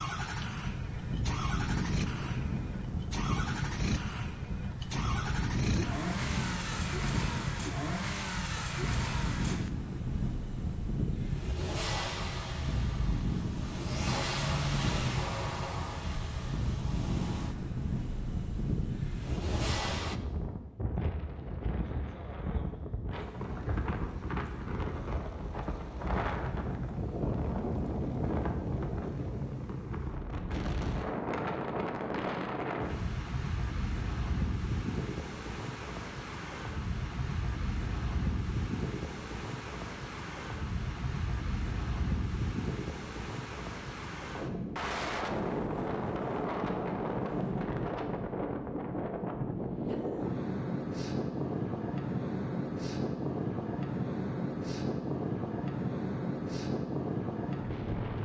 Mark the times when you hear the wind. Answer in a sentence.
You can hear the wind from 0.0 to 58.2 s.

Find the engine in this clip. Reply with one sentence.
The engine can be heard from 0.0 to 20.2 s.